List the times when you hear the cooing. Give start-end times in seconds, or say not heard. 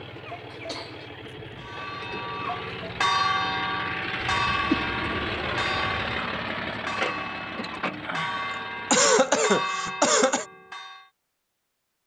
not heard.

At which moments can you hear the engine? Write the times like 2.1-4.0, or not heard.
0.0-9.2.